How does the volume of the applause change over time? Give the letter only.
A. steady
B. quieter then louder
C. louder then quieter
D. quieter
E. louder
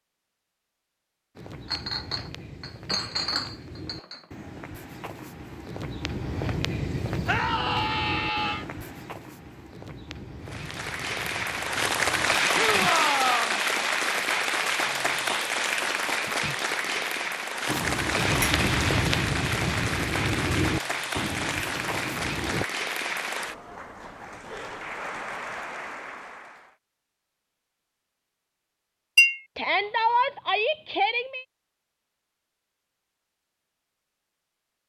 D.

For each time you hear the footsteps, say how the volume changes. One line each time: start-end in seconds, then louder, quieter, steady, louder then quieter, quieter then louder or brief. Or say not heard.
1.4-12.9 louder then quieter
17.6-22.6 quieter.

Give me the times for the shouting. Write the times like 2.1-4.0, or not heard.
7.2-8.7, 12.5-13.6, 29.6-31.4.